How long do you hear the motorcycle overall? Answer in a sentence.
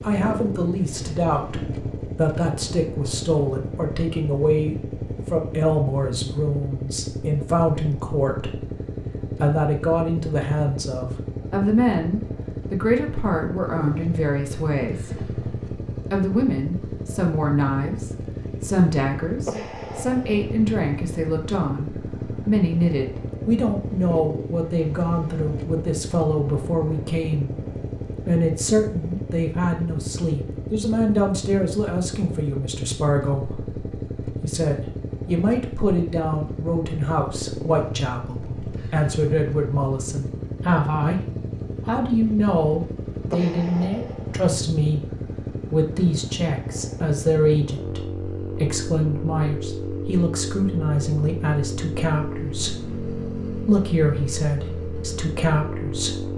The motorcycle can be heard for 56 seconds in total.